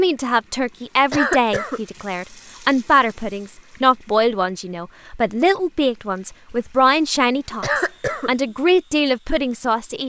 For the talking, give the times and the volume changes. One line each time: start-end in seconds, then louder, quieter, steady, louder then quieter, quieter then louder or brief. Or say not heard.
0.0-10.0 steady.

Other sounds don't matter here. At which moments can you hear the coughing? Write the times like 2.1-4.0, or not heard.
1.1-1.8, 7.6-8.3.